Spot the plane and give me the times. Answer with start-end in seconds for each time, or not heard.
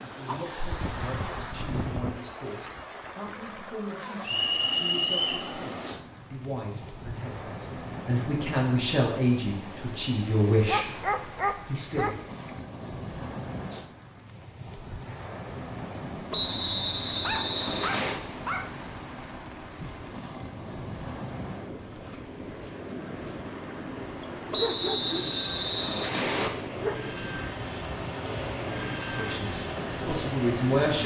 16.4-31.0.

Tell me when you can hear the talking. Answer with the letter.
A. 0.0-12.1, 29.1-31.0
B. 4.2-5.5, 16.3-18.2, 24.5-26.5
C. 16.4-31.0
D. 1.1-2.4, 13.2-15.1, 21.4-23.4
A.